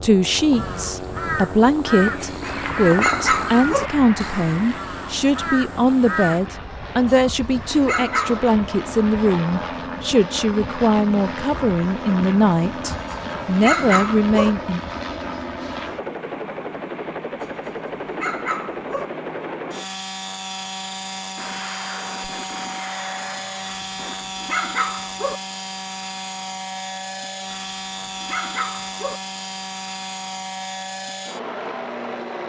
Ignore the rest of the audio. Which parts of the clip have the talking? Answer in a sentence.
You can hear the talking from 0.0 to 14.8 s.